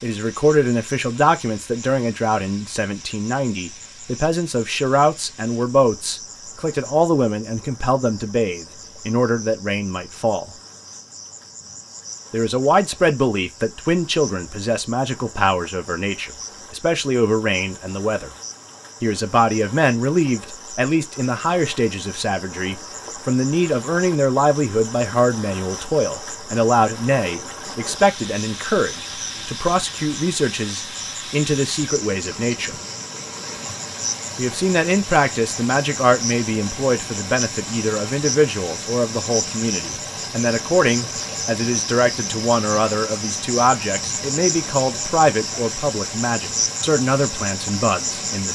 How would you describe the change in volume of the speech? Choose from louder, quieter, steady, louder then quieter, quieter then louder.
steady.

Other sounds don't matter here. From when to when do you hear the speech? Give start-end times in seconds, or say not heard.
0.0-10.5, 12.3-18.3, 19.0-32.8, 34.4-48.4.